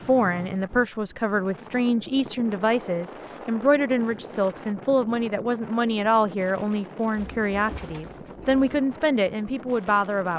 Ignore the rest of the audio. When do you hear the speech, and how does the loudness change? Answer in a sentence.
The speech can be heard from 0.1 to 10.3 s, at a steady volume.